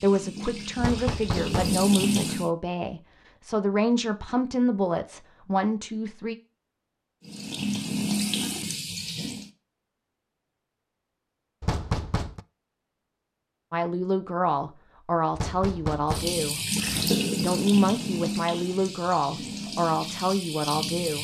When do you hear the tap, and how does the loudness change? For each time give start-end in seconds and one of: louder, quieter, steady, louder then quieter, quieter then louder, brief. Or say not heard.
0.0-2.5 brief
7.2-9.5 brief
16.1-21.1 quieter.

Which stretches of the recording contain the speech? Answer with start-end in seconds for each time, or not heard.
0.0-6.3, 13.7-16.6, 17.4-21.1.